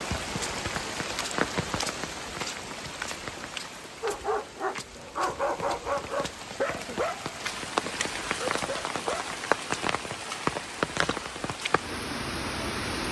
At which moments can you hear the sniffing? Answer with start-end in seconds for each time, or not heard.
not heard.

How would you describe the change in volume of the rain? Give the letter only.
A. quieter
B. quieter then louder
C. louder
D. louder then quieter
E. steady
B.